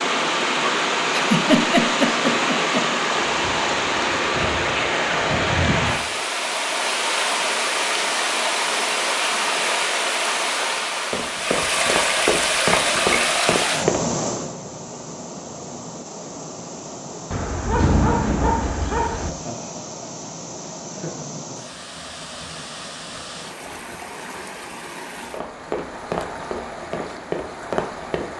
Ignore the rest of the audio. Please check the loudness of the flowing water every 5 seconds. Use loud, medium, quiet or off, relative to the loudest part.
loud, loud, loud, quiet, quiet, quiet.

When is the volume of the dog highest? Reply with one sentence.
The loudest moment of the dog is at 18 seconds.